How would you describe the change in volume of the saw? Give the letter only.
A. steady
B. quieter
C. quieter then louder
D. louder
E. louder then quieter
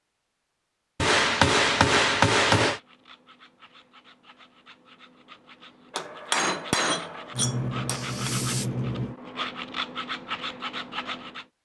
D.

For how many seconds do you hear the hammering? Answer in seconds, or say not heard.
4 s.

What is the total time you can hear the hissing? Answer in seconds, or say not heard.
2 s.